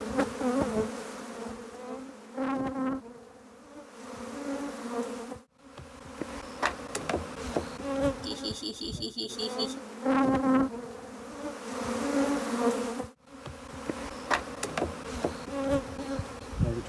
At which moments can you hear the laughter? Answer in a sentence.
The laughter can be heard from 8.2 to 9.8 s.